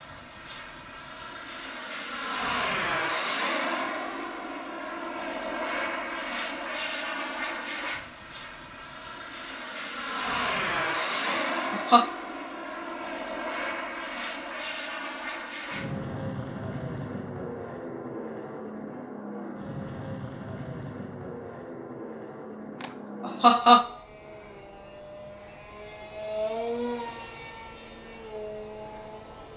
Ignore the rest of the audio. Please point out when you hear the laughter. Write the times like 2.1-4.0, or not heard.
11.2-12.1, 22.8-23.9.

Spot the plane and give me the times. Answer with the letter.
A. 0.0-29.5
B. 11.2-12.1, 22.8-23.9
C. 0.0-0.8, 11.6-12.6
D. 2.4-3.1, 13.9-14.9
A.